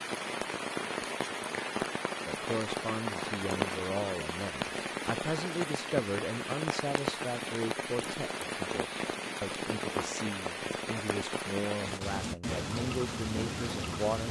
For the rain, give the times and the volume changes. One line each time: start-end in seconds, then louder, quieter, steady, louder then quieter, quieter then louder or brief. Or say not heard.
0.0-14.2 steady.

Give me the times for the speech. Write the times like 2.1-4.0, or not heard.
2.2-14.2.